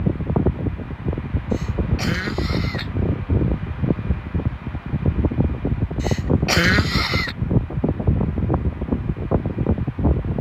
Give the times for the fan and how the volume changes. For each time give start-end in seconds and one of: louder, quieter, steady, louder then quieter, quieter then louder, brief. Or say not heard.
0.0-10.3 steady.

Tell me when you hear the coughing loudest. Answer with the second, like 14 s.
7 s.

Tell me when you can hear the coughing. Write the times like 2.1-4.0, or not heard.
1.5-2.9, 6.0-7.3.